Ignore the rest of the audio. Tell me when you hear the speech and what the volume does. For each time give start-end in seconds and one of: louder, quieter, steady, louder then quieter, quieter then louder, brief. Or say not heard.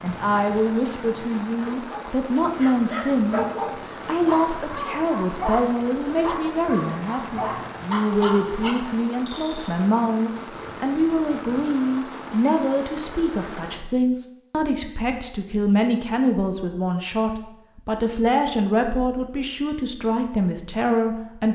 0.0-21.4 steady.